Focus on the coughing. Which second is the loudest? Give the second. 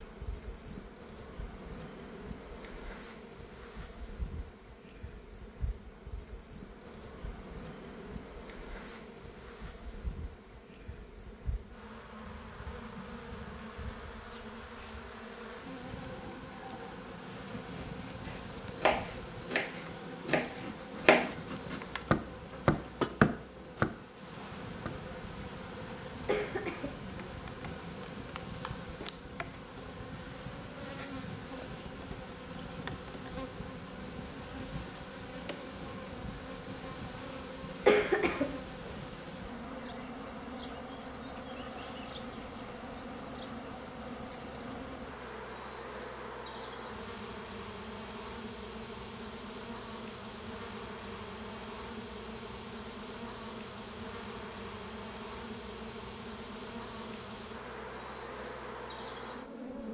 38 s.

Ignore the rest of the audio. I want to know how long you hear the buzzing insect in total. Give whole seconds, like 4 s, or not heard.
60 s.